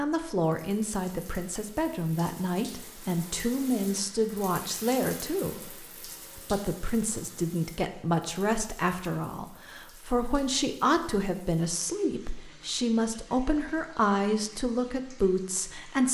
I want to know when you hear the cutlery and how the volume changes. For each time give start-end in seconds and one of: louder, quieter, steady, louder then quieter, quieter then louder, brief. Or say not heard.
not heard.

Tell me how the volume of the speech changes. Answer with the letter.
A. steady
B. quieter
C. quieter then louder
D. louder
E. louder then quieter
A.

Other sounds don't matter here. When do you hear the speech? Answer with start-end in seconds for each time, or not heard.
0.0-16.1.